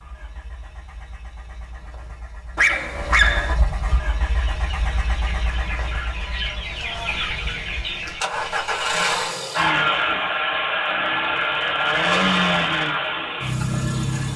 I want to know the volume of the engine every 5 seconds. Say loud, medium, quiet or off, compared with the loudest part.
quiet, medium, loud.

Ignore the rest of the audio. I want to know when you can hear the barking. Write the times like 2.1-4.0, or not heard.
2.5-3.5, 9.0-9.9.